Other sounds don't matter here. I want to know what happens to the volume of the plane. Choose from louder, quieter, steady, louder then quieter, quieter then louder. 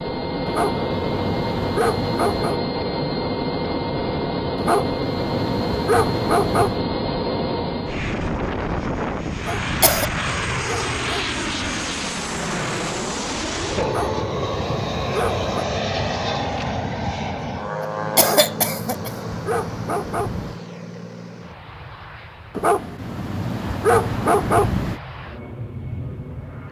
quieter.